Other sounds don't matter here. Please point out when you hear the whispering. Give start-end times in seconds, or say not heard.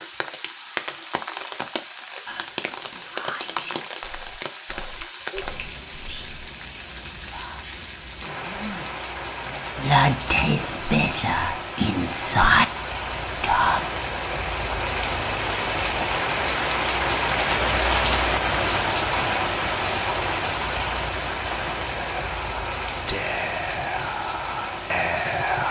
2.2-13.8, 21.9-25.6.